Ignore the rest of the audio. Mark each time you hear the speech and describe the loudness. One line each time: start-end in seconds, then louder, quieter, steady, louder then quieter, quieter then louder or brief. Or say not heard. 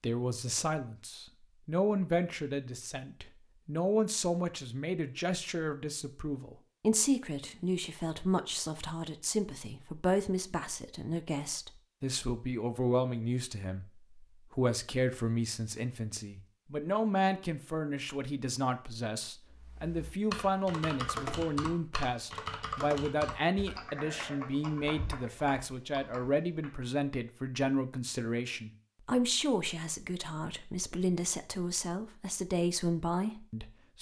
0.0-33.9 steady.